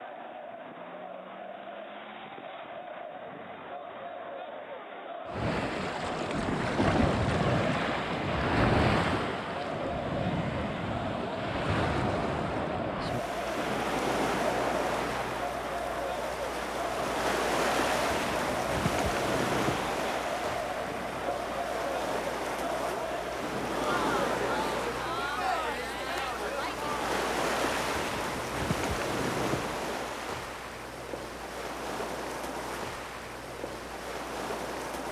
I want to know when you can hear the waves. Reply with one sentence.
You can hear the waves from 5.2 to 35.0 s.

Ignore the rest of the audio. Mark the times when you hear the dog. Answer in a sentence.
The dog can't be heard in this clip.